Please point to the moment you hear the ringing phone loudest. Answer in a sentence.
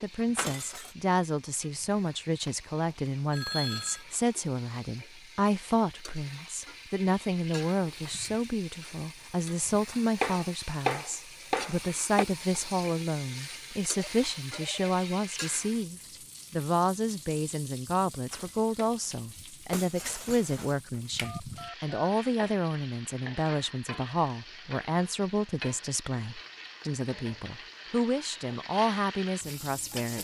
The loudest moment of the ringing phone is at 4 seconds.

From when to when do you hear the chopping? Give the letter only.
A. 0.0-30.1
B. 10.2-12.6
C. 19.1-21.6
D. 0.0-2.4
B.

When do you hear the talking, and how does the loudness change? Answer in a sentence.
The talking can be heard from 0.0 to 30.1 s, at a steady volume.